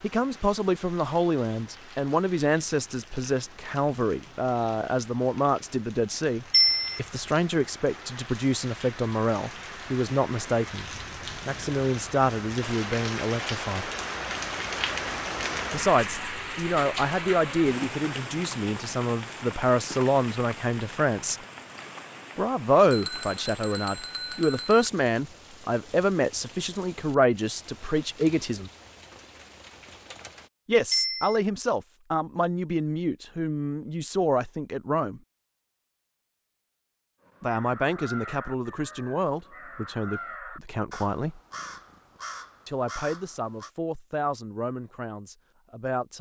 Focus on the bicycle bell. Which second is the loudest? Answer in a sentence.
The volume of the bicycle bell peaks at 7 seconds.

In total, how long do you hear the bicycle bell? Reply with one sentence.
The bicycle bell can be heard for 3 seconds in total.